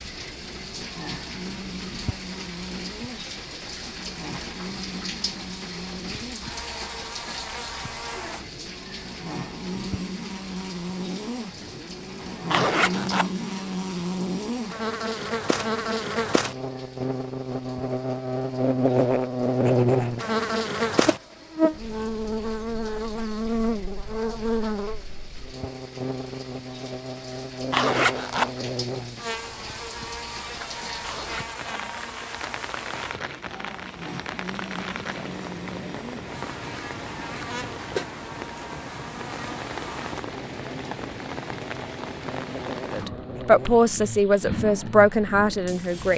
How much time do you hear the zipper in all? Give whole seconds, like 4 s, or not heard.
2 s.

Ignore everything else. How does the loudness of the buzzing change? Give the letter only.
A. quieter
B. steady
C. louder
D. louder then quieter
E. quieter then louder
D.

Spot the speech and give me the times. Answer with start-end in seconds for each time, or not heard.
42.9-46.1.